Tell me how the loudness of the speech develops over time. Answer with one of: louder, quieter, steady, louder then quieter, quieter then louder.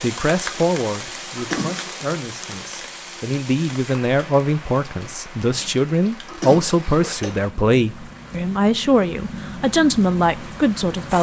louder.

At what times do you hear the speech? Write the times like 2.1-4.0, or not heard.
0.0-11.1.